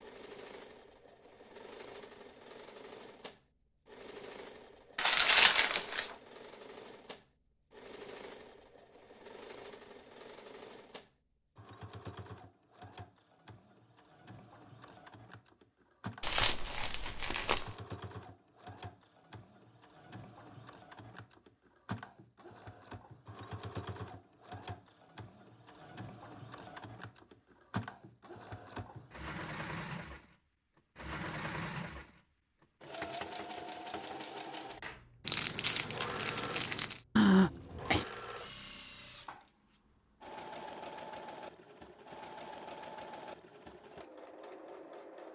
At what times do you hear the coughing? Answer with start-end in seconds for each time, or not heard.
37.1-38.0.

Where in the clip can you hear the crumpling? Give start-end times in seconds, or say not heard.
5.0-6.1, 16.2-17.7, 35.2-37.0.